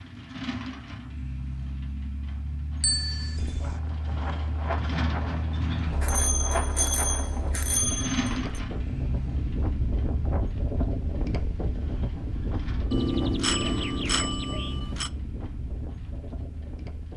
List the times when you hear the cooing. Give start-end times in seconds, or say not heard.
not heard.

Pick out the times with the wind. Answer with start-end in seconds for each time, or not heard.
2.9-17.1.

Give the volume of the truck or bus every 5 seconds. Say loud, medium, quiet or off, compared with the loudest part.
loud, loud, medium, quiet.